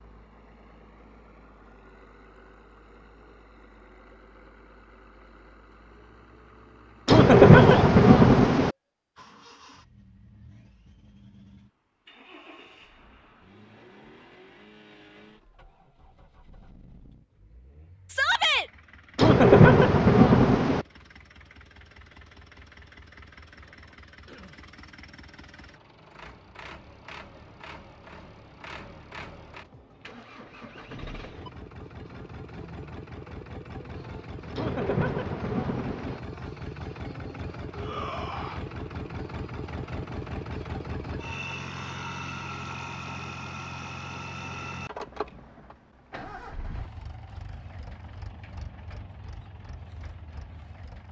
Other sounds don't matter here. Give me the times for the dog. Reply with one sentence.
You can't hear the dog here.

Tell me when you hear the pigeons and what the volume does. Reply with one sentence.
You can't hear the pigeons here.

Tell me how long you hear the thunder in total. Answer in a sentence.
You can hear the thunder for 5 seconds altogether.